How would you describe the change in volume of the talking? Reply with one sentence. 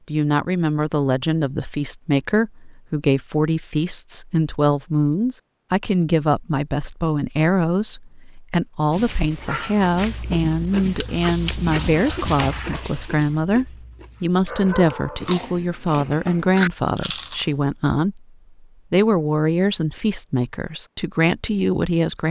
The volume of the talking stays about the same.